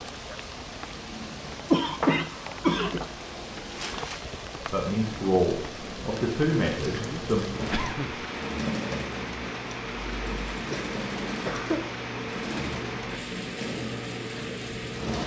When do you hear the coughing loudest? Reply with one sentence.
The volume of the coughing peaks at 2 seconds.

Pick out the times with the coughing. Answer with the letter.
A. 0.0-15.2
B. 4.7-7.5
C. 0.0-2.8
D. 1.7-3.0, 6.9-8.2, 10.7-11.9
D.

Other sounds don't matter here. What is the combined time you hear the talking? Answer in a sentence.
You can hear the talking for 3 seconds altogether.